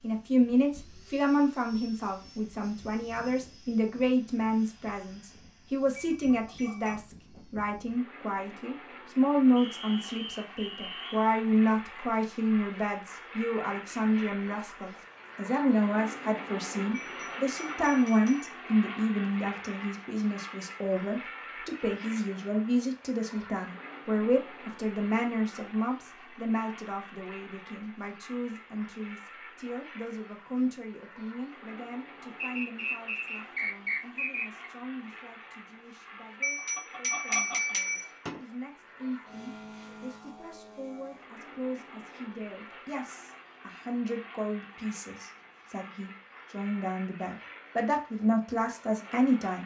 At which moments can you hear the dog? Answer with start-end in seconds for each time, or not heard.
not heard.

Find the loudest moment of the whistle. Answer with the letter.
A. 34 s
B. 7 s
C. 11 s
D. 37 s
A.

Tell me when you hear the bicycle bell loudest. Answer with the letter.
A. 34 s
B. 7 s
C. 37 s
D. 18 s
C.